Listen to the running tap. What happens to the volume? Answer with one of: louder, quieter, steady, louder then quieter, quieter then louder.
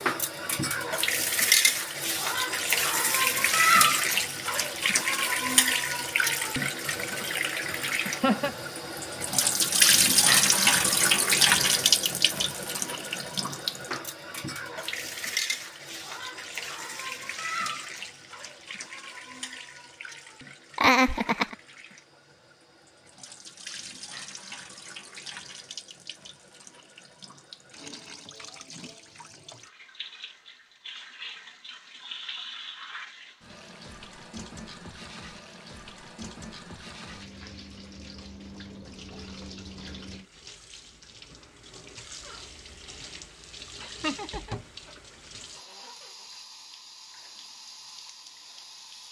quieter.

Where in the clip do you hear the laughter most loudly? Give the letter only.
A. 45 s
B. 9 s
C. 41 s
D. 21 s
D.